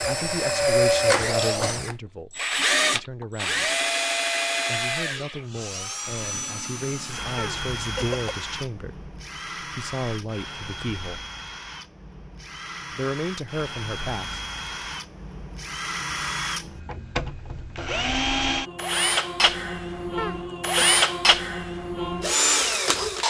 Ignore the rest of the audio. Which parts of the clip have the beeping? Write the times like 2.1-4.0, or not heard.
not heard.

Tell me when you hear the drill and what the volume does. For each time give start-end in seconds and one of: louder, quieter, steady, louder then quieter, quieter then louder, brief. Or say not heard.
0.0-23.2 quieter then louder.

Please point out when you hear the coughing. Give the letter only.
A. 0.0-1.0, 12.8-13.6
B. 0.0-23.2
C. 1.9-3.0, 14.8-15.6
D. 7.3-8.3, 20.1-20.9
D.